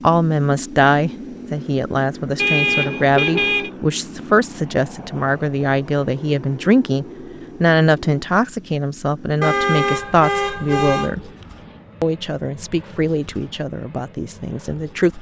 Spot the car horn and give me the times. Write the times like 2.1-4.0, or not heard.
2.4-3.7, 9.4-11.2.